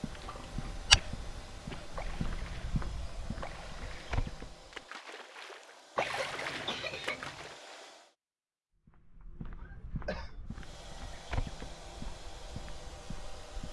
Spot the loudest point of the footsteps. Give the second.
1 s.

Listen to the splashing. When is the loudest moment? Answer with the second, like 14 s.
6 s.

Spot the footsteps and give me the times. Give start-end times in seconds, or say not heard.
0.0-4.8, 8.8-13.6.